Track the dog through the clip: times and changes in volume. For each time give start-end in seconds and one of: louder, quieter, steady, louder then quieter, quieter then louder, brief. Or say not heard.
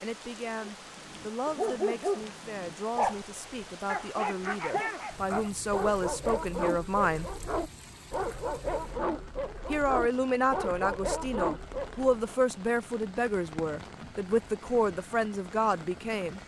0.6-12.3 steady.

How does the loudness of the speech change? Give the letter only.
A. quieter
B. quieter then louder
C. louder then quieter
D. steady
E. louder
E.